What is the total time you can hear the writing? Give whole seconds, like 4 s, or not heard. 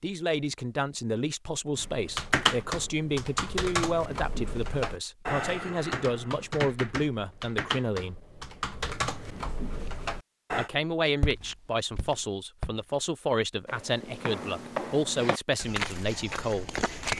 not heard.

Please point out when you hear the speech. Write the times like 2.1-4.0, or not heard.
0.0-8.2, 10.6-16.7.